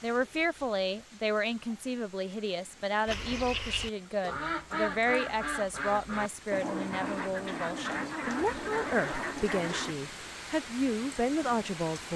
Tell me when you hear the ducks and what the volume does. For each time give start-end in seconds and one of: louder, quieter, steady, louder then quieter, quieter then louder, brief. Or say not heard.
3.0-9.9 steady.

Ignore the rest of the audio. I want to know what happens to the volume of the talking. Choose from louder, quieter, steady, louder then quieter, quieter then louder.
steady.